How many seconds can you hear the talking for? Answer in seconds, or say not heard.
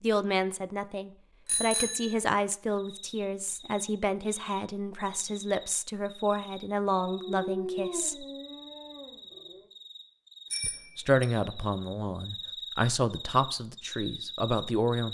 13 s.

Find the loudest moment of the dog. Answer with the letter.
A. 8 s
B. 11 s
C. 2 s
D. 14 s
A.